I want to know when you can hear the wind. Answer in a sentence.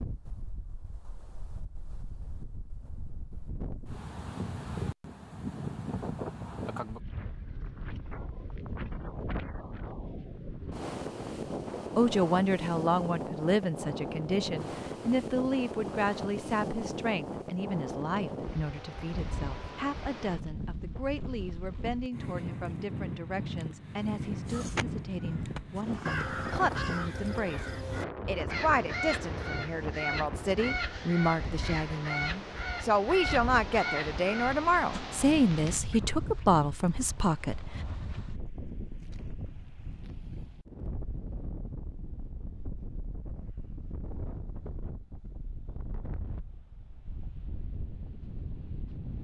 You can hear the wind from 0.0 to 49.1 s.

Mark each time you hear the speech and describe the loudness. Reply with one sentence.
The speech can be heard from 11.4 to 37.8 s, getting quieter then louder.